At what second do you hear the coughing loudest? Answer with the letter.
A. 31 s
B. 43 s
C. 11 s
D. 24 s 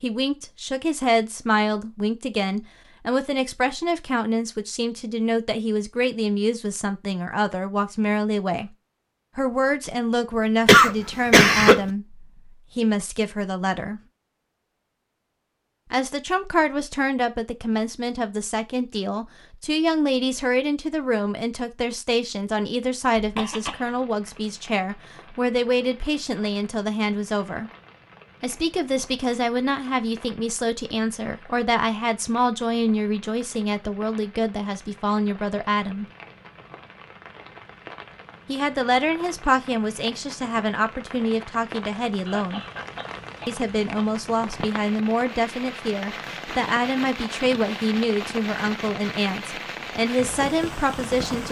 C.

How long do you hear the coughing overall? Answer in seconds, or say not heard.
4 s.